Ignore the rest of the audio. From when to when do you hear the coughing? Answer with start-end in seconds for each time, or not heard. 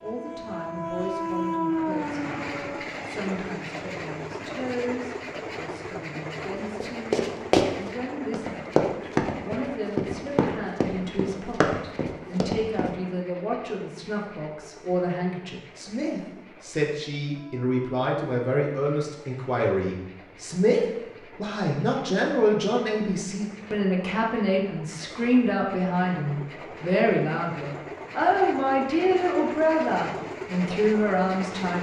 not heard.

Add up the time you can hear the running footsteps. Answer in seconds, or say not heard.
6 s.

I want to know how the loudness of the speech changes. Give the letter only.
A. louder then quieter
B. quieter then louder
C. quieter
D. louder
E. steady
D.